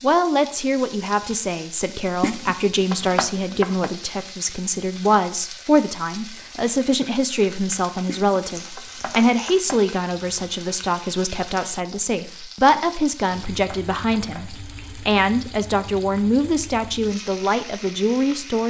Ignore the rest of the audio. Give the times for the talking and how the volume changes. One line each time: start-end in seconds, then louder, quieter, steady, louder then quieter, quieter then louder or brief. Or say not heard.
0.0-18.6 steady.